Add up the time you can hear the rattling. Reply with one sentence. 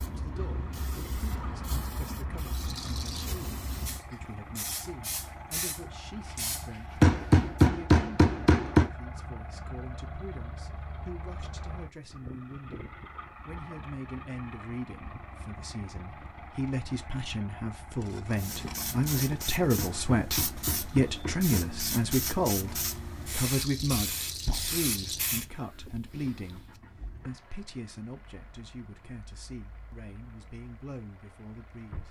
You can hear the rattling for 4 seconds altogether.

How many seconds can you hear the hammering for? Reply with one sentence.
You can hear the hammering for 4 seconds altogether.